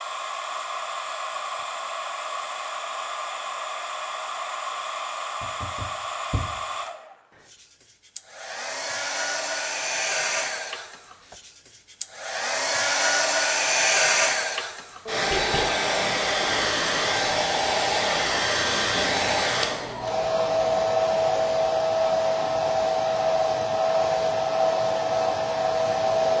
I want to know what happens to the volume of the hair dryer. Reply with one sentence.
The volume of the hair dryer goes up.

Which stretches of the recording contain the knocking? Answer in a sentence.
The knocking can be heard from 5.4 to 6.5 s and from 15.1 to 15.8 s.